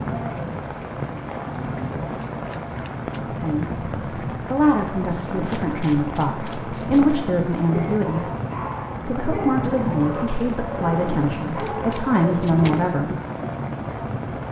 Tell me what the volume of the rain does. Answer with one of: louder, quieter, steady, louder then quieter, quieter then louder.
steady.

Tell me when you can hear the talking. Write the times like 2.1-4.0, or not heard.
3.3-8.3, 9.1-13.2.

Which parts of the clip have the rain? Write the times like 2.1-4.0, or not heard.
0.0-14.4.